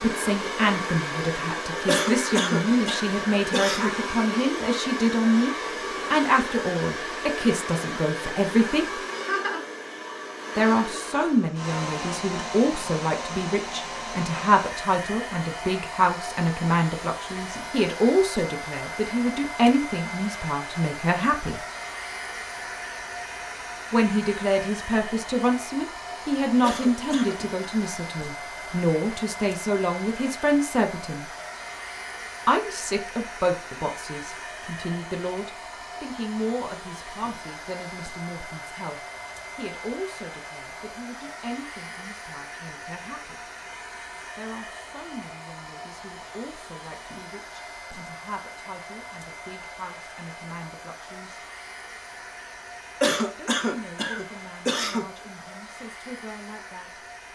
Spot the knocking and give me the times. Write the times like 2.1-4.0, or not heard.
not heard.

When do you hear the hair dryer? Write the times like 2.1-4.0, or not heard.
0.0-57.3.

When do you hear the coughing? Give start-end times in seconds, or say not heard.
1.9-4.0, 26.6-27.4, 53.0-55.0.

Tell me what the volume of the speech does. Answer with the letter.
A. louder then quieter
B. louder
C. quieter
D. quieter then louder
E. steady
C.